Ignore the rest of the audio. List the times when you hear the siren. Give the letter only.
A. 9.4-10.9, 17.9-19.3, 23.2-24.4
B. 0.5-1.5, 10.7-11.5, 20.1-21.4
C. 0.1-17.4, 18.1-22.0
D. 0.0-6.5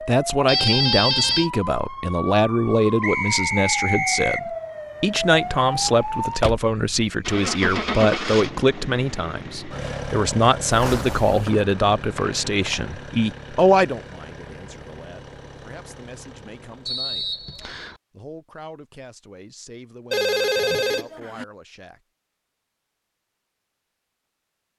D.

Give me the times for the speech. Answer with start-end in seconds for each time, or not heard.
0.1-17.4, 18.1-22.0.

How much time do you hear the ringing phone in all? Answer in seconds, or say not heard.
3 s.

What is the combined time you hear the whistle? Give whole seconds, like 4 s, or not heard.
4 s.